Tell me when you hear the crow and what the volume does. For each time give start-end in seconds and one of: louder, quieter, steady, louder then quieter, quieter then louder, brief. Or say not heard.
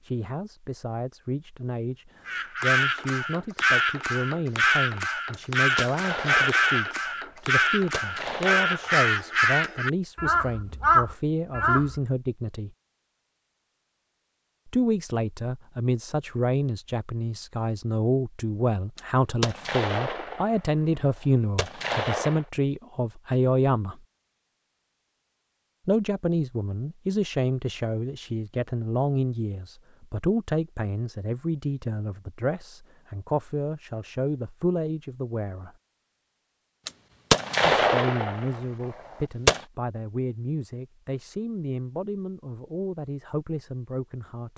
2.2-12.0 steady.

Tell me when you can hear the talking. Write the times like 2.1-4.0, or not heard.
0.0-12.7, 14.7-24.0, 25.9-35.7, 37.6-44.5.